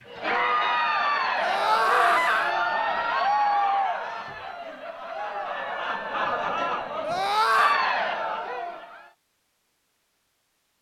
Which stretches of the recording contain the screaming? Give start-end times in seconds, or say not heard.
1.4-2.5, 7.0-7.8.